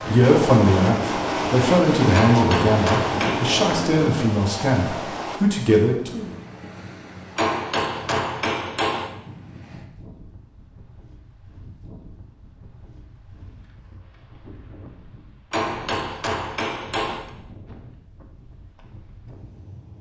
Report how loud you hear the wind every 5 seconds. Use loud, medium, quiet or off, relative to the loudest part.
loud, quiet, quiet, quiet.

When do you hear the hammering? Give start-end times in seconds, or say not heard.
2.1-3.6, 7.3-9.1, 15.5-17.3.